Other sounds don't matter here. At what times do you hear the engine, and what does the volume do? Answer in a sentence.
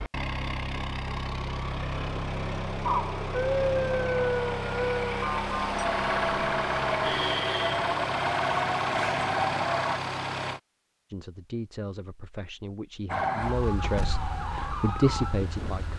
You can hear the engine from 0.0 to 10.6 s, at a steady volume.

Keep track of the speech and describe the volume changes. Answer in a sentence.
The volume of the speech goes up.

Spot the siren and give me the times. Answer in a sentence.
The siren can be heard from 2.8 to 10.0 s and from 13.1 to 15.9 s.